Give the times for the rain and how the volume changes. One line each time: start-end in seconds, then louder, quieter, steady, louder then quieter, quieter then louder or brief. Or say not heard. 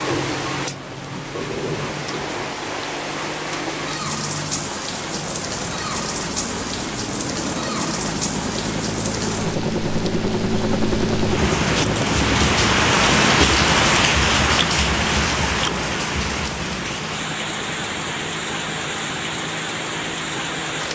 0.0-20.8 louder then quieter.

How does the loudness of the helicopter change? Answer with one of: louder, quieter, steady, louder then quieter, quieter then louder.
louder then quieter.